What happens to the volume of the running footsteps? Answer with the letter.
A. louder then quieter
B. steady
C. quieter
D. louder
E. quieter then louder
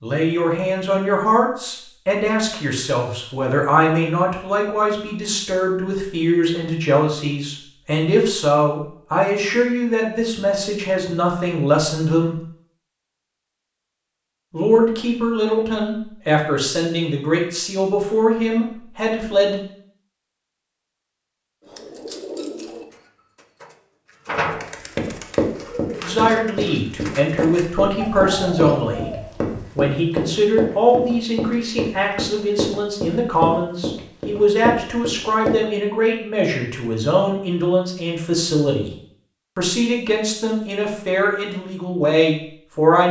B.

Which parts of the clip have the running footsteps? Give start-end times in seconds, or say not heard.
24.9-35.5.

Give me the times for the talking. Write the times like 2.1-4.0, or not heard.
0.0-12.4, 14.5-19.6, 26.0-29.1, 29.8-38.9, 39.5-43.0.